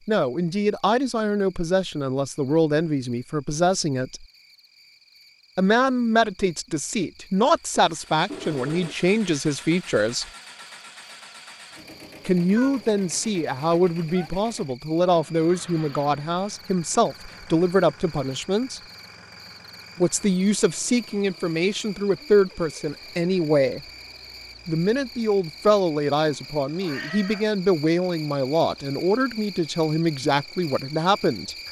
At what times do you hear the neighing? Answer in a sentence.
You can't hear the neighing here.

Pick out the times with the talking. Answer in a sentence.
You can hear the talking from 0.1 to 4.2 s, from 5.5 to 10.2 s, from 12.2 to 18.8 s, from 19.9 to 23.8 s and from 24.6 to 31.6 s.